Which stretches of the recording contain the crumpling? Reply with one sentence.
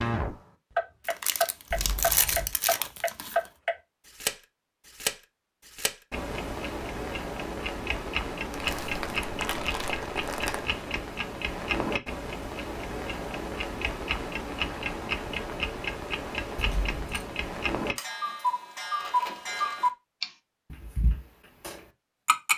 The crumpling can be heard from 1.1 to 3.5 s, from 8.5 to 10.7 s and from 18.9 to 19.9 s.